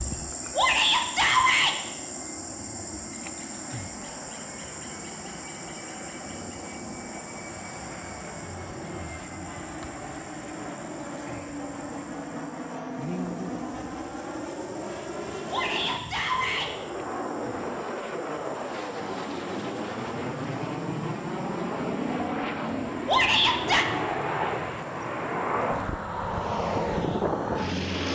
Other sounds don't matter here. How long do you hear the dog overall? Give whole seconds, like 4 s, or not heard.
not heard.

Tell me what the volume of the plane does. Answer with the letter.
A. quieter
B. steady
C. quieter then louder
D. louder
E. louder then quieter
D.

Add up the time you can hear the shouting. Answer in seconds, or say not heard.
3 s.